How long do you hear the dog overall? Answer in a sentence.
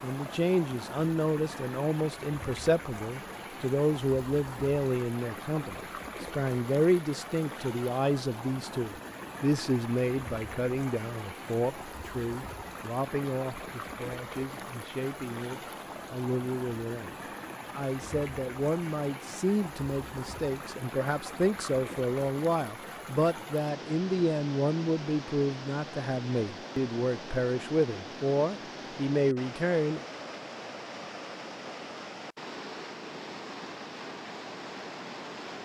The dog can't be heard in this clip.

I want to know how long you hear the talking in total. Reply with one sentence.
You can hear the talking for 30 seconds altogether.